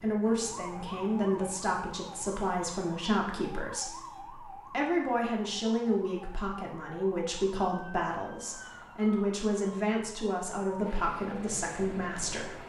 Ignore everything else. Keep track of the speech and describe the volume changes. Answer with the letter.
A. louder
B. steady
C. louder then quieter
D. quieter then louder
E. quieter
B.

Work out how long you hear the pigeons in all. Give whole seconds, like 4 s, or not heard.
not heard.